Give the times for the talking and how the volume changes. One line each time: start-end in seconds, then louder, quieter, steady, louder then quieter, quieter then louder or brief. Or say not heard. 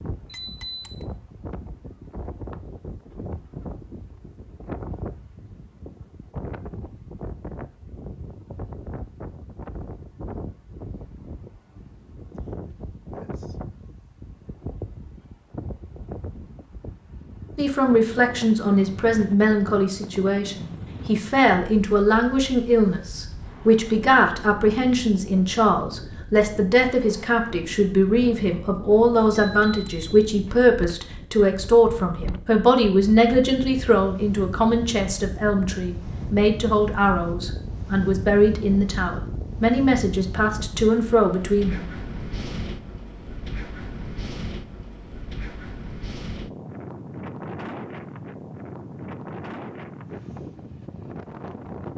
17.6-41.9 steady.